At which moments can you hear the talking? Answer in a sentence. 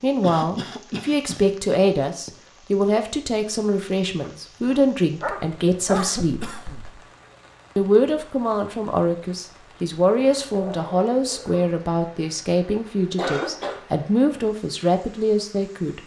The talking can be heard from 0.0 to 6.5 s and from 7.8 to 16.0 s.